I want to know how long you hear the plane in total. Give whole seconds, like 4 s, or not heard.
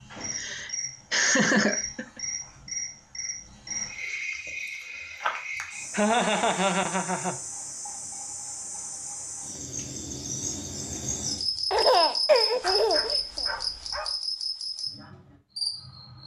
not heard.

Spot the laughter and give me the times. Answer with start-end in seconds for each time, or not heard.
0.3-2.2, 5.9-7.4, 11.7-13.4.